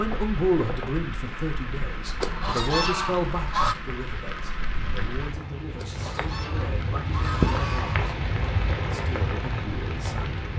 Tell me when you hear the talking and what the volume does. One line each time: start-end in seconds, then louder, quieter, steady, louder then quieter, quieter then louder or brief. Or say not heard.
0.0-8.1 quieter
8.9-10.4 brief.